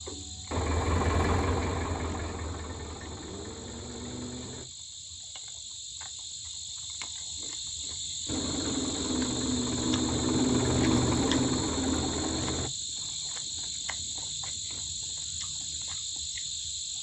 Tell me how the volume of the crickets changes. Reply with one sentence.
The loudness of the crickets goes up.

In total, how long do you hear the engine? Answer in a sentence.
The engine can be heard for 9 seconds in total.